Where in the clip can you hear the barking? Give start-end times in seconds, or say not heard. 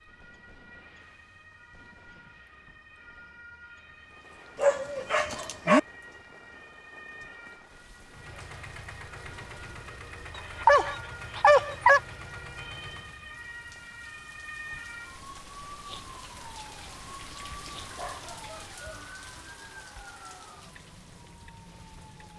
4.5-5.8, 10.3-12.0, 17.9-19.1.